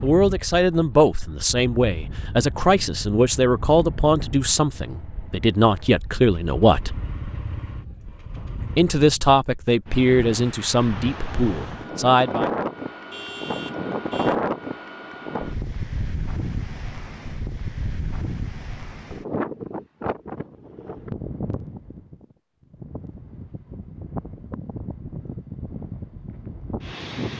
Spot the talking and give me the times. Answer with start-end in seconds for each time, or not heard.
0.0-7.0, 8.8-12.5.